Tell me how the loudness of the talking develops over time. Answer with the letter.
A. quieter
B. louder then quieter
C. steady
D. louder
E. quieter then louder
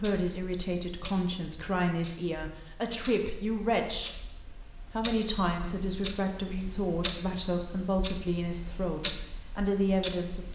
C.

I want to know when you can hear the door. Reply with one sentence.
The door can't be heard in this clip.